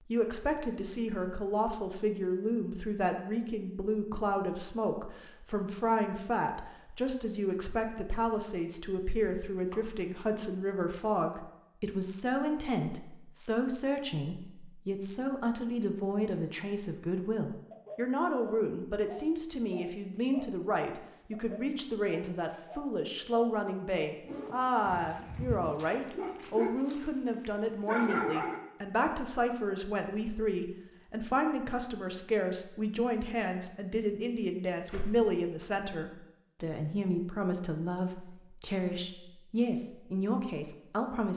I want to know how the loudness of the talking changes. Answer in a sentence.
The volume of the talking stays about the same.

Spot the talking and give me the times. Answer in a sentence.
You can hear the talking from 0.0 to 41.3 s.